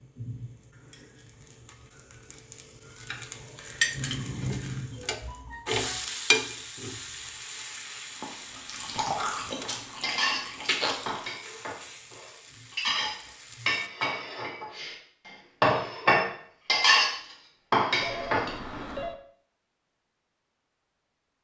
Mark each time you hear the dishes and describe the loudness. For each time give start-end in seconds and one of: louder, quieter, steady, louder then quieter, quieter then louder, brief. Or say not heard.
10.0-18.8 louder.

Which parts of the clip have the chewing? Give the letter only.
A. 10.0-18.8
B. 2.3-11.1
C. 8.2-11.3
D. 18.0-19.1
C.